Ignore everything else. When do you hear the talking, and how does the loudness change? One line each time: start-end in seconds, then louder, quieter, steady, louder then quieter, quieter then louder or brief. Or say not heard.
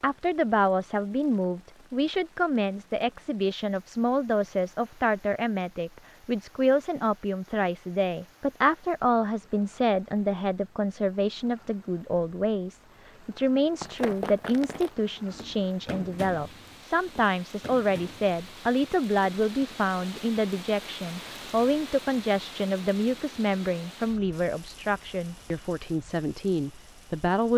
0.0-27.5 steady.